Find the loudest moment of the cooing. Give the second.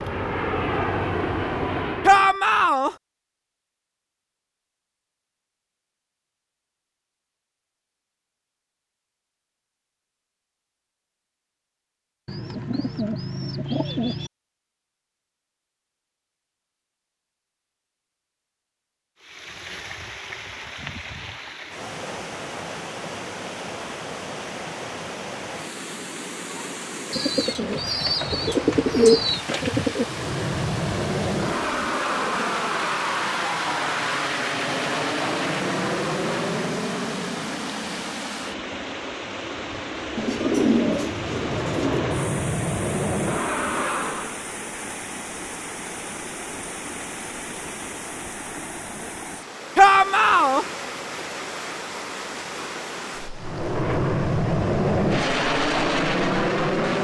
29 s.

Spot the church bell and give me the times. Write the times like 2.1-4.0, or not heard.
not heard.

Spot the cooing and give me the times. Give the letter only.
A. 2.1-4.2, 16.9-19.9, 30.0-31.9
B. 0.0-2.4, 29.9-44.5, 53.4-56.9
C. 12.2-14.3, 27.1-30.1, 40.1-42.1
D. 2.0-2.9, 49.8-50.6
C.